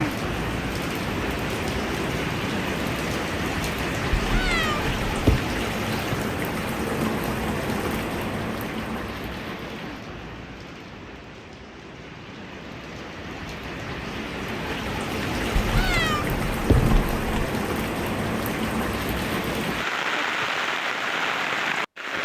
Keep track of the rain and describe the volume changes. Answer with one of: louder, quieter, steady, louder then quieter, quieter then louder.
quieter then louder.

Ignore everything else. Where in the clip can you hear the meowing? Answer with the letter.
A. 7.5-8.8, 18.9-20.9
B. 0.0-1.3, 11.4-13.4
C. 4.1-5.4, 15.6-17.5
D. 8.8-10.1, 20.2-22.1
C.